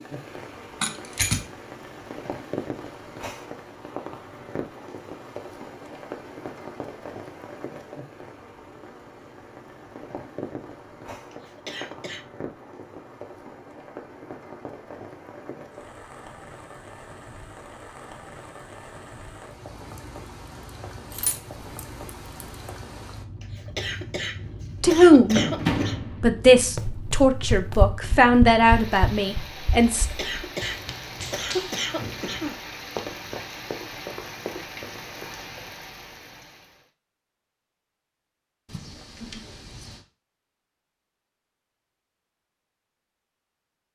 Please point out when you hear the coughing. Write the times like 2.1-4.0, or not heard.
11.3-12.2, 23.4-25.9, 30.0-32.6.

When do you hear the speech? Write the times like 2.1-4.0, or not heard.
24.8-25.4, 26.2-30.1.